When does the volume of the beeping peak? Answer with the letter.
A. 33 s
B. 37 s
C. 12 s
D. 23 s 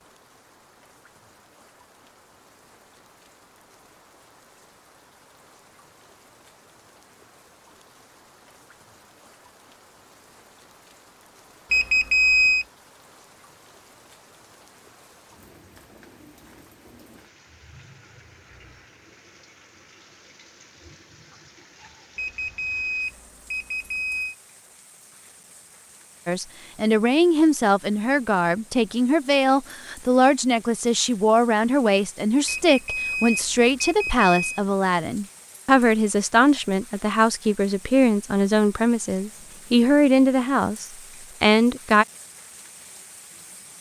C.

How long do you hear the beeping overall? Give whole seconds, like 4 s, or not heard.
5 s.